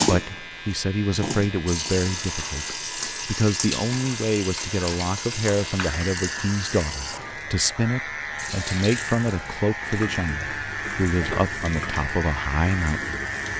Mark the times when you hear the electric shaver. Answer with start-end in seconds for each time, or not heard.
0.0-13.5.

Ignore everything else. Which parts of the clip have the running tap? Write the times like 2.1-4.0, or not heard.
0.0-13.5.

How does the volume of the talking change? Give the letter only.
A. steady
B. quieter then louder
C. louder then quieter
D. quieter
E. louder
A.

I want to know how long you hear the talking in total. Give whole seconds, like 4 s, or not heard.
13 s.